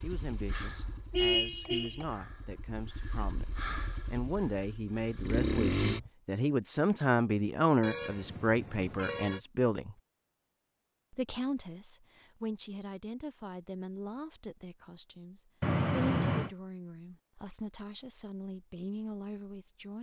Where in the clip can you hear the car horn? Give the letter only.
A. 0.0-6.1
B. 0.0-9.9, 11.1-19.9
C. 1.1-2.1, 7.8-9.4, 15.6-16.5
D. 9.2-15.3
C.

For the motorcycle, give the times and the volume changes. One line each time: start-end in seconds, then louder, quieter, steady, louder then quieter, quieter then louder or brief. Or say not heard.
0.0-6.1 quieter then louder.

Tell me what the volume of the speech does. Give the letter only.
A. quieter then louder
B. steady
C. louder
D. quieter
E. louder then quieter
E.